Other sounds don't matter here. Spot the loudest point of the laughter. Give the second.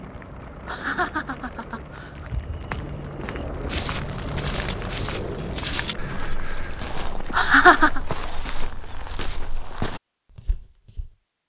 8 s.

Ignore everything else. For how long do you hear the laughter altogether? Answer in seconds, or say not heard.
2 s.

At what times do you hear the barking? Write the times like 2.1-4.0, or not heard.
not heard.